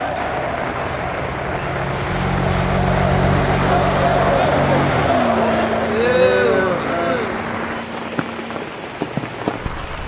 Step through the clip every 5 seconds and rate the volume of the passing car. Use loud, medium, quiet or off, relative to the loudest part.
loud, medium.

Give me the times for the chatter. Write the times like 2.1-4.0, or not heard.
0.0-7.8.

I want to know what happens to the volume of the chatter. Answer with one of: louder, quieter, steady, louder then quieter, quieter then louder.
louder.